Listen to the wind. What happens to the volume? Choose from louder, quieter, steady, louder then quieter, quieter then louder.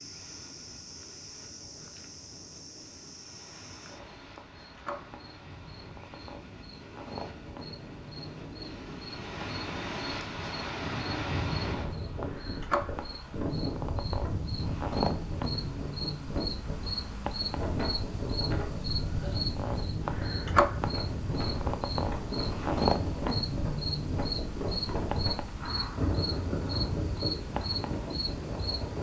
louder.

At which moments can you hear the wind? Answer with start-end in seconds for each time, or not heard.
0.0-28.9.